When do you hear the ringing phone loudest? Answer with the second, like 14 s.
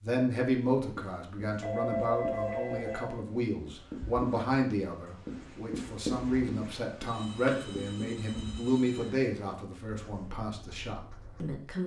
2 s.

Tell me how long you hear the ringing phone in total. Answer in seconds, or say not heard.
4 s.